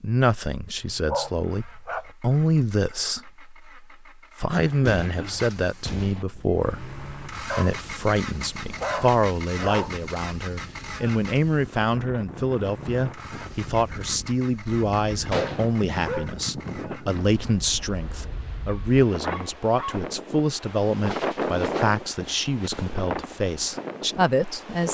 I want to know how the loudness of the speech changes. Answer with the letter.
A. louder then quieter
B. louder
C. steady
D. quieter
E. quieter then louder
C.